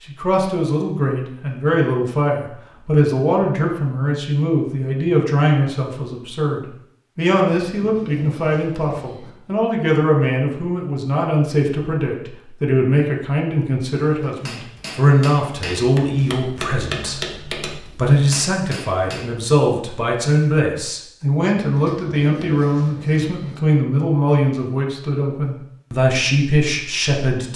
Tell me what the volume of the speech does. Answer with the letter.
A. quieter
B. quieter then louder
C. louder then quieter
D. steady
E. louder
D.